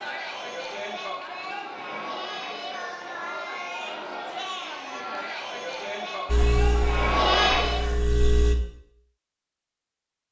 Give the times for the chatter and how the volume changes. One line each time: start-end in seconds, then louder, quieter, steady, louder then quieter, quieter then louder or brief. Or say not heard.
0.0-8.1 louder.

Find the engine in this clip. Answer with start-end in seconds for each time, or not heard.
6.2-8.6.